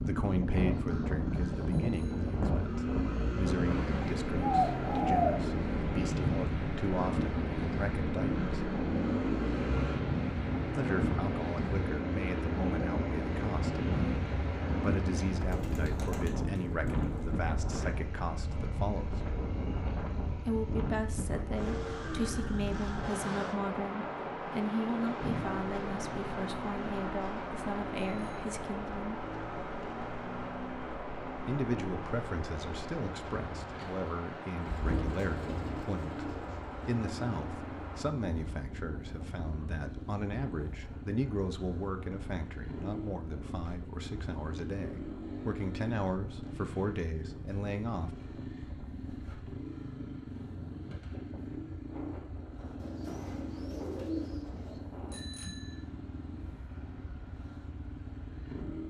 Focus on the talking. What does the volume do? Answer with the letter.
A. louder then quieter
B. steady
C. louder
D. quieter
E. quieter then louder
B.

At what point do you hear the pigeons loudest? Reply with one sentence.
The loudest moment of the pigeons is at 5 seconds.